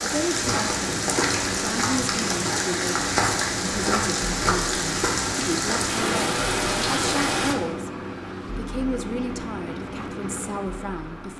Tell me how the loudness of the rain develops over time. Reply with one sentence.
The loudness of the rain stays about the same.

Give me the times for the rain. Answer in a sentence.
The rain can be heard from 0.0 to 7.5 s.